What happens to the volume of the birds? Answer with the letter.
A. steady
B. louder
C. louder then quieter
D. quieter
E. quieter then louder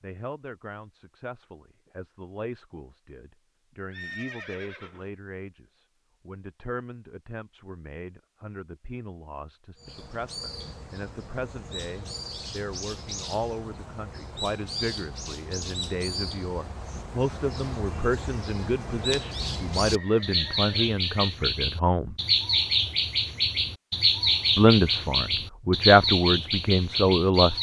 B.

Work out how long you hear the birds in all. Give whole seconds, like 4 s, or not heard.
18 s.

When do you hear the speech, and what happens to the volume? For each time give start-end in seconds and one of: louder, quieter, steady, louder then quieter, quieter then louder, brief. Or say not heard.
0.0-22.1 louder
24.6-27.5 brief.